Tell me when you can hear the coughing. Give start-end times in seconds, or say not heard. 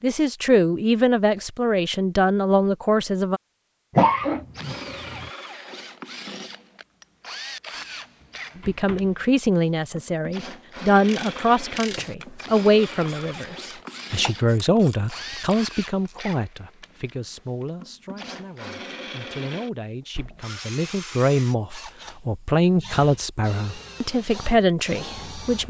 4.0-5.3.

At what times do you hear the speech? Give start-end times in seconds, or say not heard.
0.0-3.4, 8.6-25.6.